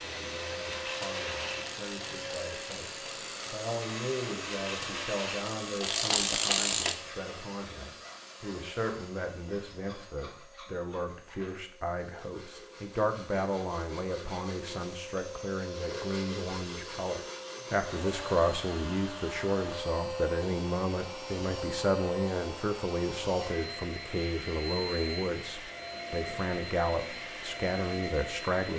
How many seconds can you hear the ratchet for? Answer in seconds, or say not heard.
7 s.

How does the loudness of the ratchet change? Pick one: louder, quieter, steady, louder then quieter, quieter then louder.
quieter then louder.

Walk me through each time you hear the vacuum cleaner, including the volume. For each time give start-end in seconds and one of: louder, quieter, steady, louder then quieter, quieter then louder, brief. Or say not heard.
0.0-28.7 quieter then louder.